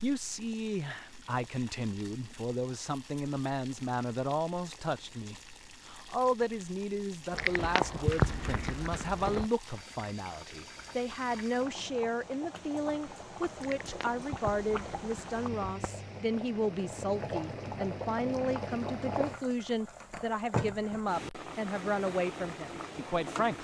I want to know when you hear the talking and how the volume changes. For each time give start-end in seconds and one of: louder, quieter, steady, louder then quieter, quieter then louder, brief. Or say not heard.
0.0-23.6 steady.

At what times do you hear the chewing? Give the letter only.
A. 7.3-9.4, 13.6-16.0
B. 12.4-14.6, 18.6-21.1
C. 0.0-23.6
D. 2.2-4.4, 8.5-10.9
A.